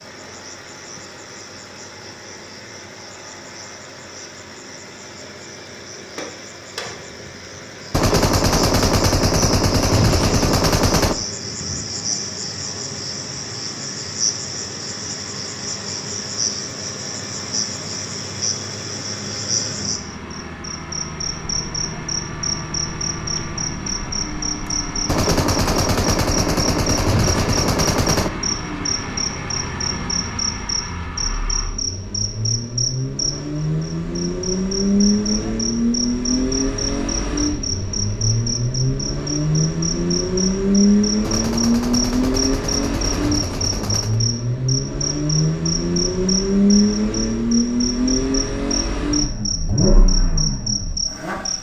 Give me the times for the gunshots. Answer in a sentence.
You can hear the gunshots from 7.9 to 11.2 s, from 25.1 to 28.3 s and from 41.2 to 44.2 s.